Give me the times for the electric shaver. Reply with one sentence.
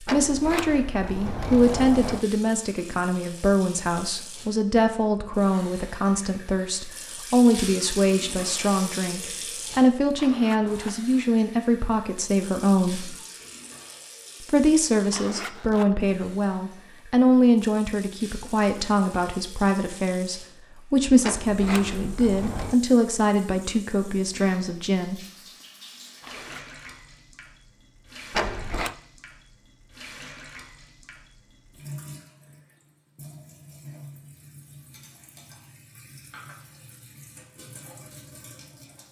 The electric shaver can't be heard in this clip.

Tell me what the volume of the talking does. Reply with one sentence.
The loudness of the talking stays about the same.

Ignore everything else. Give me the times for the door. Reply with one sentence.
You can hear the door from 0.1 to 2.2 s, from 21.2 to 22.8 s and from 28.3 to 28.9 s.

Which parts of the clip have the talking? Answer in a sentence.
The talking can be heard from 0.0 to 13.2 s and from 14.4 to 25.2 s.